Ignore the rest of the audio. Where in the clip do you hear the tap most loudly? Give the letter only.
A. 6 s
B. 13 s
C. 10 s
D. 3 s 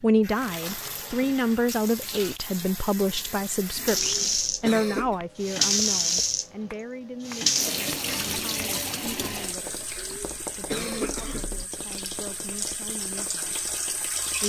A.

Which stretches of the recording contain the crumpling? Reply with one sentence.
You can hear the crumpling from 0.4 to 1.1 s.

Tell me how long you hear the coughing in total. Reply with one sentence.
You can hear the coughing for 3 seconds altogether.